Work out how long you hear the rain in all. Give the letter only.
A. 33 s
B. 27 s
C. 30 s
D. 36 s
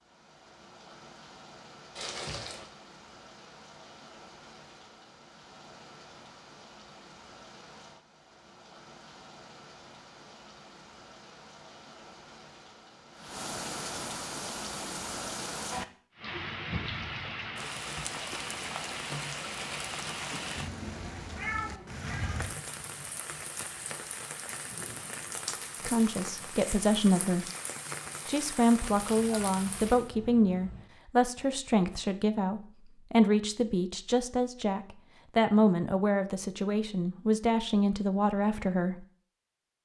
C.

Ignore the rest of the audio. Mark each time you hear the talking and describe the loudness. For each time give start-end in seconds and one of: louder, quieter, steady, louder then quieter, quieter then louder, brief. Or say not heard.
25.9-27.4 brief
28.2-39.0 steady.